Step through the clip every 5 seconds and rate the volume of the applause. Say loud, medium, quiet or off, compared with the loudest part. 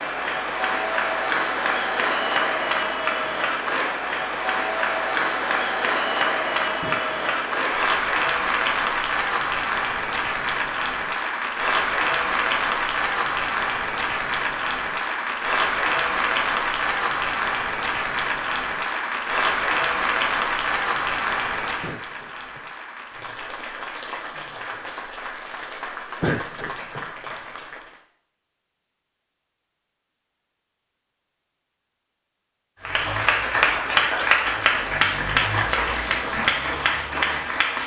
loud, loud, loud, loud, medium, quiet, loud, loud.